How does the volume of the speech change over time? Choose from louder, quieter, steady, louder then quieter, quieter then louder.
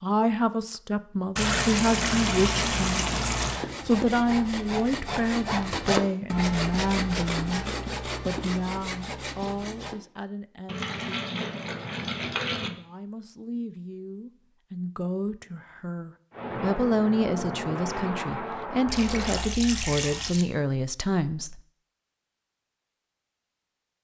quieter then louder.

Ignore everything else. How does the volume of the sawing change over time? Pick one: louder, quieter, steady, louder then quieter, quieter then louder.
louder then quieter.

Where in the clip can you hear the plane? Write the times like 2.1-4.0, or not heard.
16.3-19.5.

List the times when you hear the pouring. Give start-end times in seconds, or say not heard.
1.4-3.6, 10.7-12.7, 18.9-20.4.